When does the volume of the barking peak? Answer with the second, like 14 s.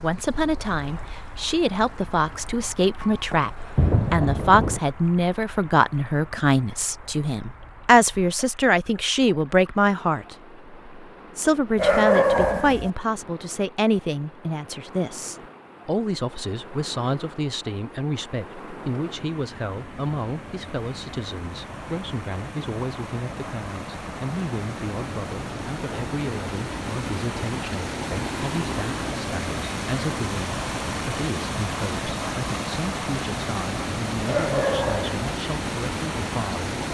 12 s.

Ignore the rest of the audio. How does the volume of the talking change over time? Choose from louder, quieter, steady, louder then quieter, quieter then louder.
quieter.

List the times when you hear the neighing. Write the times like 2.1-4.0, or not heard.
not heard.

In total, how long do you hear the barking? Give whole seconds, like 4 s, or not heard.
2 s.